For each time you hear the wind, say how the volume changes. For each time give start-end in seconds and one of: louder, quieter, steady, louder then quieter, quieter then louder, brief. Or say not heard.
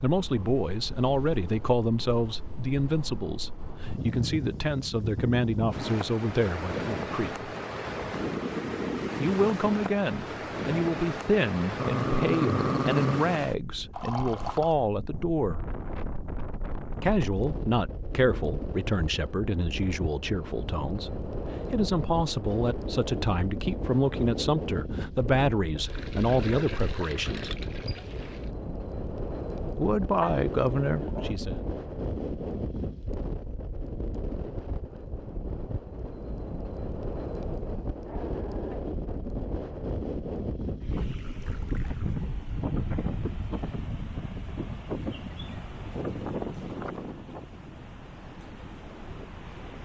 0.0-49.8 steady.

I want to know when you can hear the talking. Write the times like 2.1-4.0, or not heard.
0.0-7.5, 9.2-15.6, 17.0-27.5, 29.8-31.6.